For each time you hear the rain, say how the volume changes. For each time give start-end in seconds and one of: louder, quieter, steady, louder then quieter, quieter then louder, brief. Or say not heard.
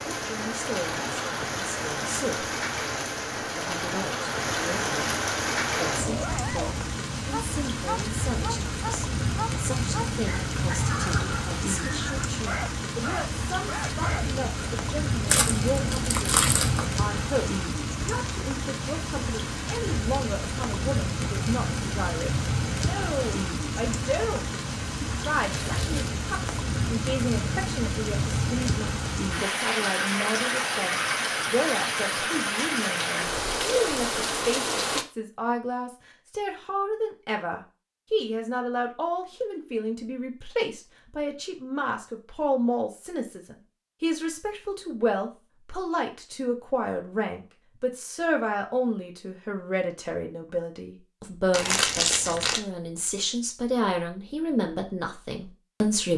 0.0-35.0 steady.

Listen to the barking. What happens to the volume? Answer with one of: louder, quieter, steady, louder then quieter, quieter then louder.
steady.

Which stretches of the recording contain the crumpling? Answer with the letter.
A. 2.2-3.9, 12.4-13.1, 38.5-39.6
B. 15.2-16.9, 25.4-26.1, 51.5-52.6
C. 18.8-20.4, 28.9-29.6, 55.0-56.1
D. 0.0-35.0
B.